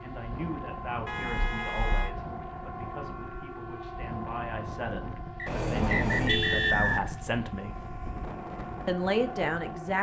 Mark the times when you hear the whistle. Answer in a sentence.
The whistle can be heard from 5.3 to 7.2 s.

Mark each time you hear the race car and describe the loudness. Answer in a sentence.
The race car can't be heard in this clip.